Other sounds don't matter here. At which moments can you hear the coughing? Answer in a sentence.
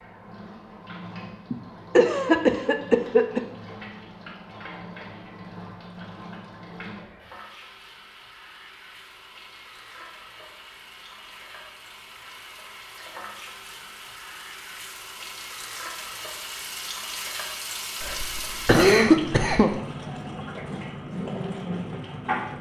You can hear the coughing from 1.5 to 3.4 s and from 18.0 to 19.7 s.